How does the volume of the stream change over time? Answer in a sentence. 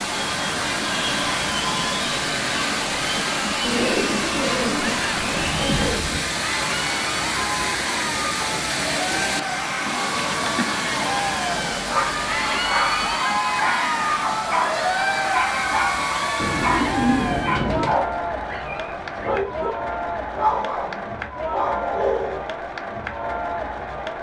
The loudness of the stream goes down.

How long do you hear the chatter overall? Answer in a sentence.
You can hear the chatter for 24 seconds altogether.